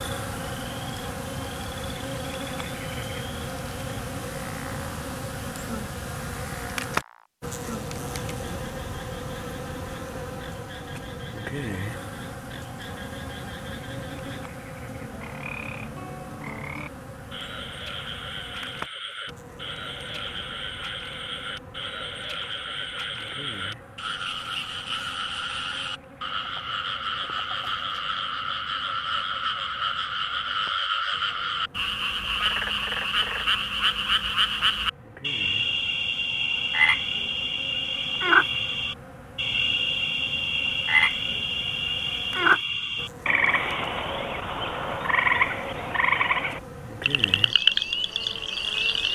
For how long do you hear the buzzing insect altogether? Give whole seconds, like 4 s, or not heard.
49 s.